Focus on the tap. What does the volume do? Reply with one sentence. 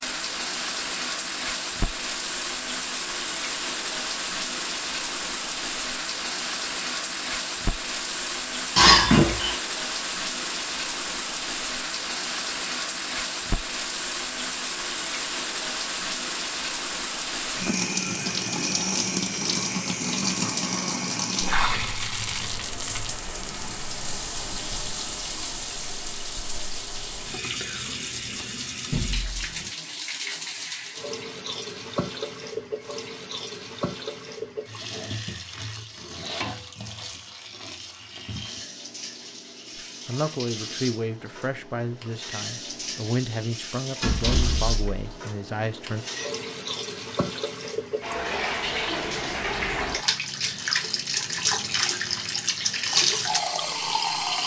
The loudness of the tap goes down, then up.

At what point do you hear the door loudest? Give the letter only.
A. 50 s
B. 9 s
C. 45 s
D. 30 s
B.